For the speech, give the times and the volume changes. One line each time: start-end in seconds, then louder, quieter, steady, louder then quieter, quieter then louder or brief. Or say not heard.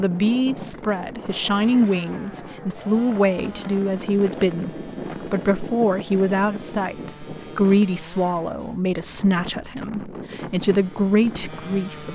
0.0-12.1 steady.